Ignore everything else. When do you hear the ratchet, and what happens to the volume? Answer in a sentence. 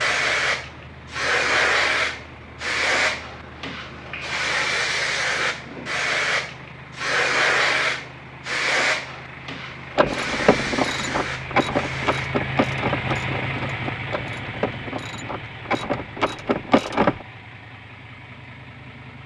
The ratchet can be heard from 9.9 to 17.2 s, getting quieter then louder.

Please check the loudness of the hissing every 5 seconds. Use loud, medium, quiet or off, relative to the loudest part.
loud, loud, medium, off.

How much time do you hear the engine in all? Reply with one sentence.
You can hear the engine for 19 seconds altogether.